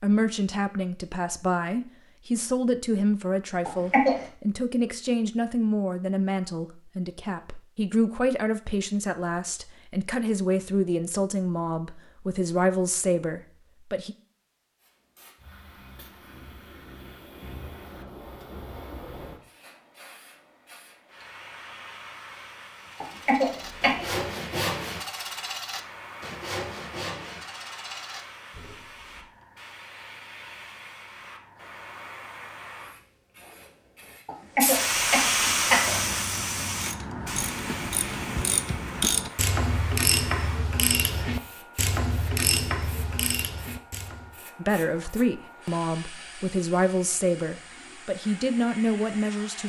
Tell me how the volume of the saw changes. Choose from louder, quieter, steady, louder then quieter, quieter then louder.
quieter.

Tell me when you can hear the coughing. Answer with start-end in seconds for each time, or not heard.
3.6-4.2, 23.0-24.2, 34.2-36.0.